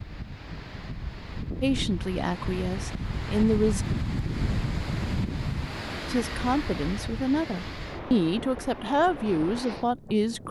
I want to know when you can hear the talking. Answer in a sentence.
You can hear the talking from 1.6 to 3.9 s and from 6.1 to 10.4 s.